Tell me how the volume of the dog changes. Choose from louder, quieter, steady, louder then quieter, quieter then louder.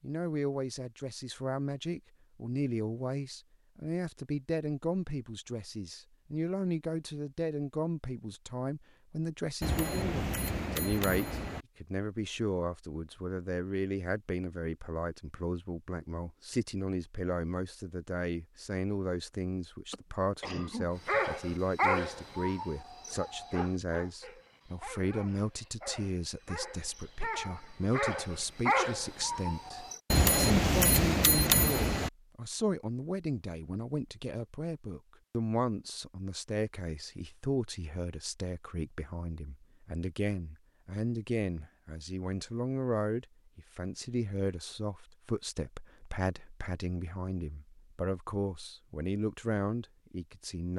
quieter then louder.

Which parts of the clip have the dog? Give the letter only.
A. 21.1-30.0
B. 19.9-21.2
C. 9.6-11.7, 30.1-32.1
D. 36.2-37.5
A.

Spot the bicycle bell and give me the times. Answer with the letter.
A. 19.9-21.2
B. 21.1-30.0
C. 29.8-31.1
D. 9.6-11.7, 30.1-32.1
D.